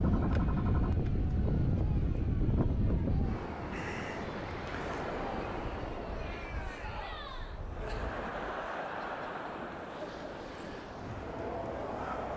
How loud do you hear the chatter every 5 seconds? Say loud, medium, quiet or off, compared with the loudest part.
quiet, loud, loud.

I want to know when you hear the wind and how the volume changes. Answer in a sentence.
The wind can be heard from 0.0 to 12.3 s, getting quieter.